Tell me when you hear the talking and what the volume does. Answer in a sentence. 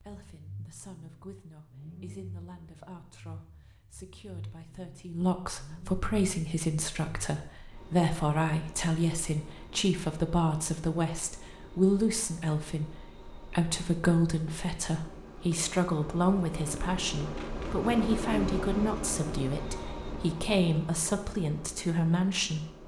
The talking can be heard from 0.0 to 22.6 s, getting louder.